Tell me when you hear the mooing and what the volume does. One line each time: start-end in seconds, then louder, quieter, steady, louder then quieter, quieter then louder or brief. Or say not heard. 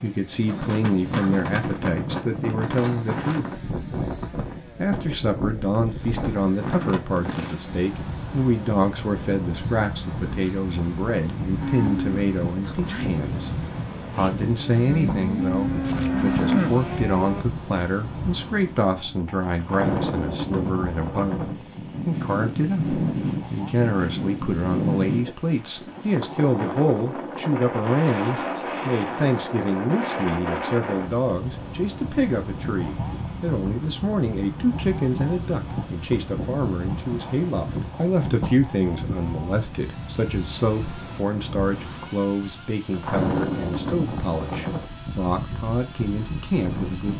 11.6-17.4 quieter then louder.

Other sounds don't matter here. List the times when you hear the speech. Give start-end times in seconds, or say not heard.
0.0-3.6, 4.8-47.1.